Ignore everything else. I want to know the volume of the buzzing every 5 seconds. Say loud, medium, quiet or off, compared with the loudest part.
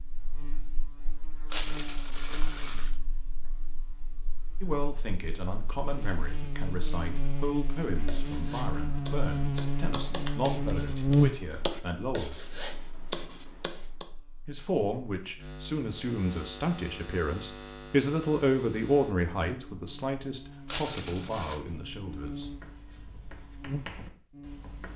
quiet, medium, loud, quiet, quiet.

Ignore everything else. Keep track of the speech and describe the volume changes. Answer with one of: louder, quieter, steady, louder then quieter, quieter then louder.
louder then quieter.